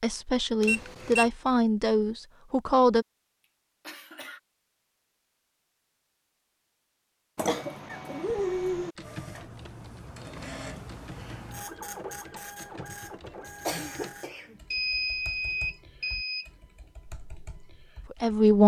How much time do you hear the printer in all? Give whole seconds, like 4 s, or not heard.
5 s.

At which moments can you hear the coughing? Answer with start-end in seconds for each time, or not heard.
3.9-4.4, 7.3-8.9, 13.4-14.6.